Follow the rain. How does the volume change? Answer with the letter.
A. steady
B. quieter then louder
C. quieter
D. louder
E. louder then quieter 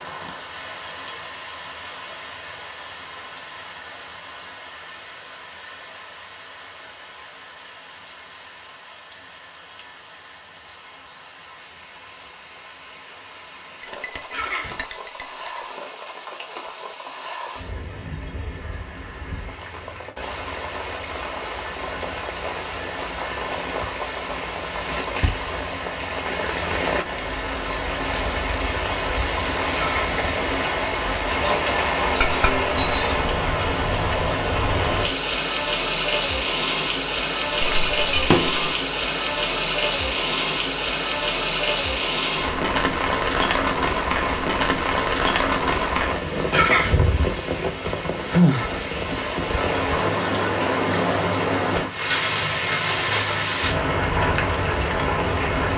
D.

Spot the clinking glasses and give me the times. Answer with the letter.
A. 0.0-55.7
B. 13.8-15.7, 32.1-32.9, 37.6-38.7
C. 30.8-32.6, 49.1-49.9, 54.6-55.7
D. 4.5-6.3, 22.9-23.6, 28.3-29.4
B.